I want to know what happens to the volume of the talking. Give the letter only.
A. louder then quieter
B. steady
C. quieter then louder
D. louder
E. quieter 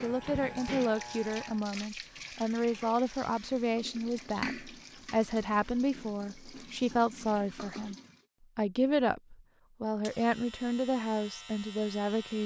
B.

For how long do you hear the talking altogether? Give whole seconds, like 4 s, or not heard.
12 s.